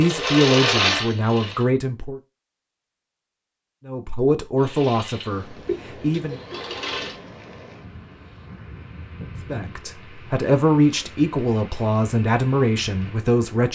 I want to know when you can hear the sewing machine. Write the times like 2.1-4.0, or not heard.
0.0-1.6, 4.6-7.2.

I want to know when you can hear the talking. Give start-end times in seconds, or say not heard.
0.0-2.2, 3.9-6.4, 9.4-13.7.